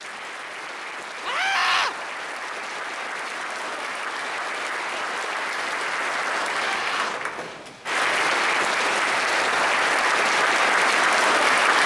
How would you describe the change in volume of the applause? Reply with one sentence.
The loudness of the applause goes up.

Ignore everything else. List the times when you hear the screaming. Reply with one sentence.
You can hear the screaming from 1.2 to 1.9 s and from 6.6 to 7.2 s.